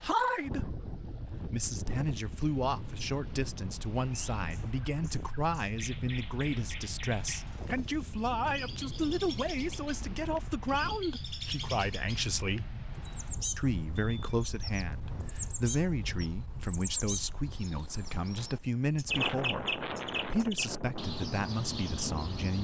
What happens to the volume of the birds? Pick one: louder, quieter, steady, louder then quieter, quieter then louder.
louder.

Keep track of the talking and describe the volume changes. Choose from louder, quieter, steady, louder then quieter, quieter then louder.
steady.